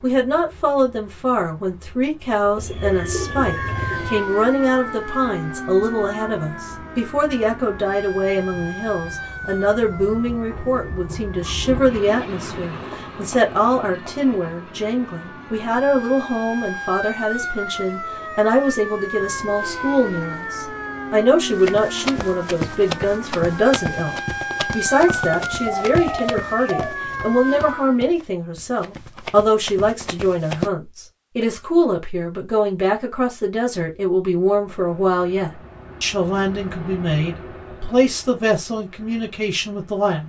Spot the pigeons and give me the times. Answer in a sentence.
You can hear the pigeons from 2.5 to 4.2 s and from 25.1 to 27.0 s.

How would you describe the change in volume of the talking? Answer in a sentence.
The volume of the talking stays about the same.